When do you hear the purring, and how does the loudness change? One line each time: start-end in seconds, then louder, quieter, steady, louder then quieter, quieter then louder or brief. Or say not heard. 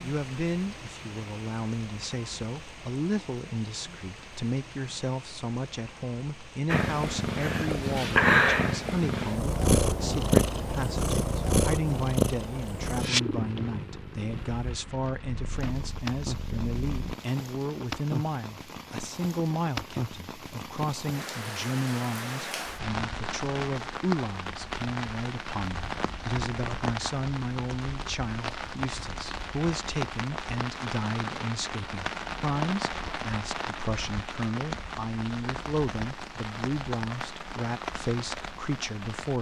6.7-17.1 quieter.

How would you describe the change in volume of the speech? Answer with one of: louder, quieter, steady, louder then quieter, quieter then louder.
steady.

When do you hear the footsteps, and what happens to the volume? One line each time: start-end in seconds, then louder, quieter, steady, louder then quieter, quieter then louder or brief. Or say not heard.
not heard.